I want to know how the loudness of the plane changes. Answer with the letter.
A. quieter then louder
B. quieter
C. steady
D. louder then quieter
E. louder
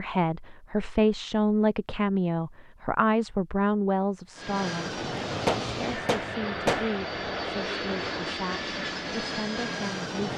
C.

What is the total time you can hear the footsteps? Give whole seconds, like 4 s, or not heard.
not heard.